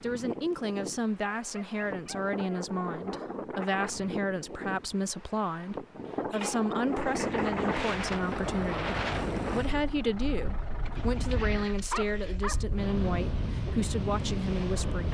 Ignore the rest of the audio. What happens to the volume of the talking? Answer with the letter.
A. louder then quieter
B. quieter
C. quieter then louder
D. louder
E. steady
E.